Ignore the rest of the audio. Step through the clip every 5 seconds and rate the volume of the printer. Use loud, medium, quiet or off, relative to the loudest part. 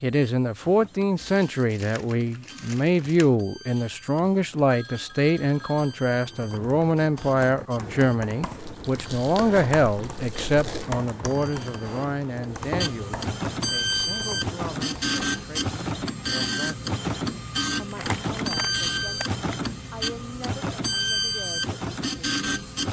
quiet, quiet, loud, loud, loud.